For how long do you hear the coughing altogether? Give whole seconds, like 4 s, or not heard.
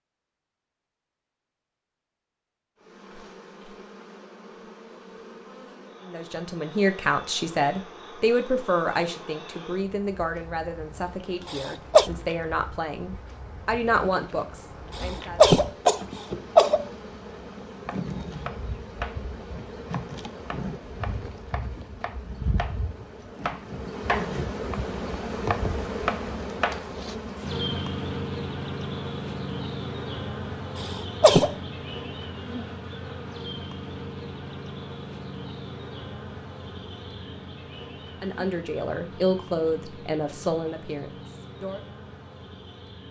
3 s.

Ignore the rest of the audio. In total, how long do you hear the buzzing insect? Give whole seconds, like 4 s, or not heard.
40 s.